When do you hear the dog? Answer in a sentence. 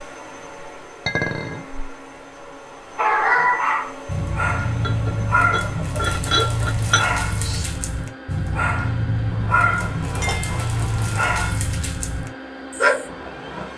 The dog can be heard from 3.0 to 13.1 s.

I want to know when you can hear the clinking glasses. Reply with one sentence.
The clinking glasses can be heard from 1.1 to 1.6 s, from 4.8 to 7.1 s and from 10.2 to 10.7 s.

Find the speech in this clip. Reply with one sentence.
The speech can't be heard in this clip.